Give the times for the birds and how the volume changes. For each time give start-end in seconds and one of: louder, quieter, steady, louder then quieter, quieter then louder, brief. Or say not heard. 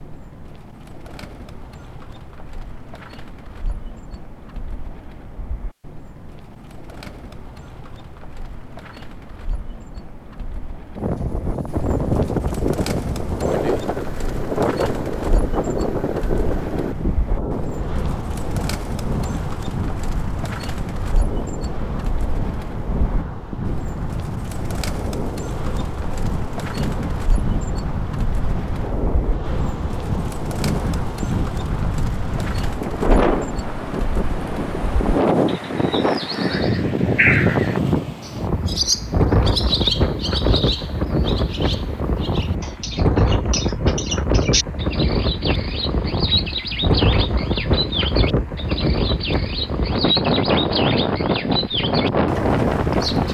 0.0-53.3 louder.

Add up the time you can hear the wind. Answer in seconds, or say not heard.
42 s.